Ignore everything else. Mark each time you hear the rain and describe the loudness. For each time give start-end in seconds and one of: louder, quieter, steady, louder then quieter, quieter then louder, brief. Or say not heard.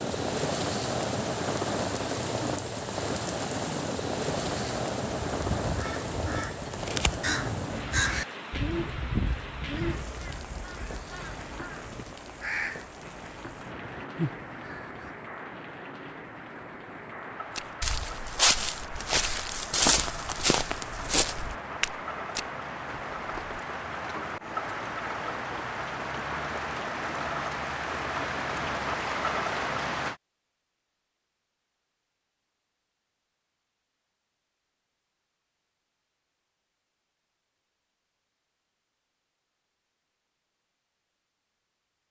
0.0-30.2 quieter then louder.